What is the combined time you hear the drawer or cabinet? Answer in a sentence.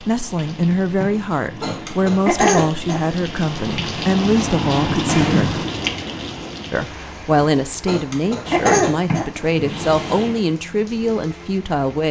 The drawer or cabinet can be heard for 5 seconds in total.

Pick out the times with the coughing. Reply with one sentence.
The coughing can be heard from 1.1 to 3.1 s and from 7.4 to 9.4 s.